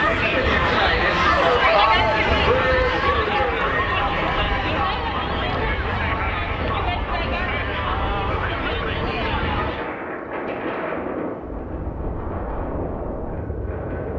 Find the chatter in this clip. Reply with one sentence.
You can hear the chatter from 0.0 to 9.9 s.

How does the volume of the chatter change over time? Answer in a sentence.
The loudness of the chatter goes down.